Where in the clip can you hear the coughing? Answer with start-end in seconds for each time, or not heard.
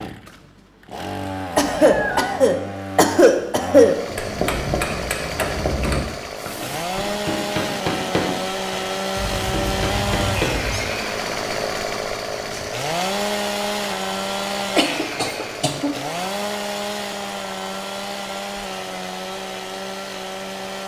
1.6-4.0, 14.8-15.9.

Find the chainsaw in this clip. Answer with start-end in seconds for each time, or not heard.
0.0-20.8.